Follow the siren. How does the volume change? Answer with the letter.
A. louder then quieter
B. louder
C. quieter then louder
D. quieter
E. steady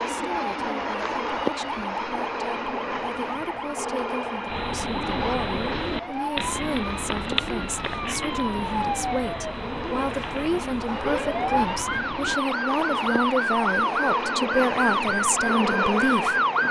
B.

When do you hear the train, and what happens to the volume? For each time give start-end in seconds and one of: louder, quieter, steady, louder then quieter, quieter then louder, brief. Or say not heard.
0.0-16.6 quieter then louder.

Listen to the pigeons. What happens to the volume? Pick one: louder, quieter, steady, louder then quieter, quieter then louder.
quieter.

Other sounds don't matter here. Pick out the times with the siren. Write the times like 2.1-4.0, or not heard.
0.0-16.6.